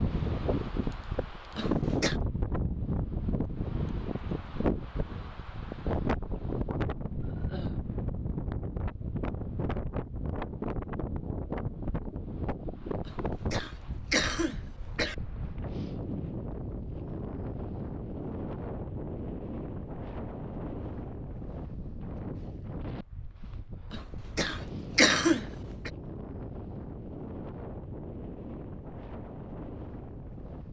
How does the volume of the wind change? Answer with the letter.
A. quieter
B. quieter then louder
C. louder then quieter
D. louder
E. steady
A.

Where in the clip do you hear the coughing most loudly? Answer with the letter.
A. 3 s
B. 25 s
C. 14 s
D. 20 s
B.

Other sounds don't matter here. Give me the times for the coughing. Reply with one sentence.
The coughing can be heard from 1.6 to 2.2 s, from 13.1 to 15.2 s and from 23.9 to 25.9 s.